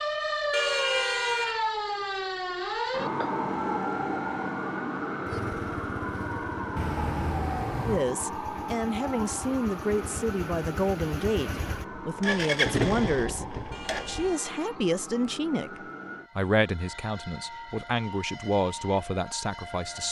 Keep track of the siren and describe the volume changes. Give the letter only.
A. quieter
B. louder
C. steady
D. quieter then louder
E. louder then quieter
A.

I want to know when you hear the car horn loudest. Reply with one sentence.
The volume of the car horn peaks at 1 second.